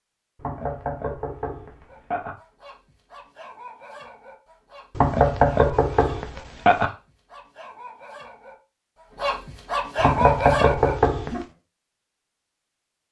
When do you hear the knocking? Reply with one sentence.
The knocking can be heard from 0.3 to 2.3 s, from 5.0 to 6.9 s and from 9.9 to 11.4 s.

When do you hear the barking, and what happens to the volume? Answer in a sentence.
You can hear the barking from 1.9 to 11.4 s, getting louder.